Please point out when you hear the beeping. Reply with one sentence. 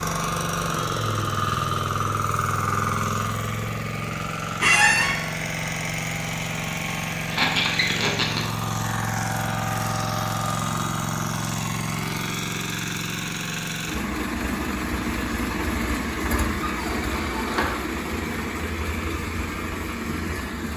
The beeping can't be heard in this clip.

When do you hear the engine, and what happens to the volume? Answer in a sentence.
You can hear the engine from 0.0 to 20.7 s, at a steady volume.